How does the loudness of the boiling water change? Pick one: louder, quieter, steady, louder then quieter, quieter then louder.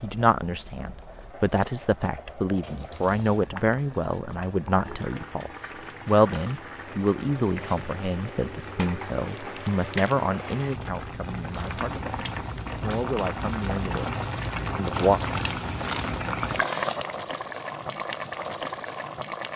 louder.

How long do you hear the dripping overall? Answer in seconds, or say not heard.
not heard.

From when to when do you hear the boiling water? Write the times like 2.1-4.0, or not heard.
0.0-19.5.